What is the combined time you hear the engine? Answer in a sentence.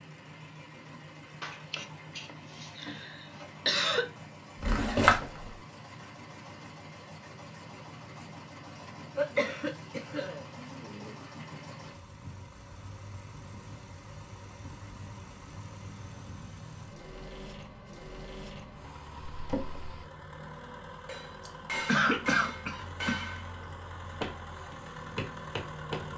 You can hear the engine for 26 seconds altogether.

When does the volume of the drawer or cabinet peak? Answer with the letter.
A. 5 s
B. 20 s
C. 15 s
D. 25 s
A.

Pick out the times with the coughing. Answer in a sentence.
You can hear the coughing from 1.4 to 4.0 s, from 9.2 to 11.2 s and from 21.4 to 23.3 s.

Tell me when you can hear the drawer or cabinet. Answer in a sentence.
You can hear the drawer or cabinet from 4.6 to 5.2 s and from 19.3 to 20.0 s.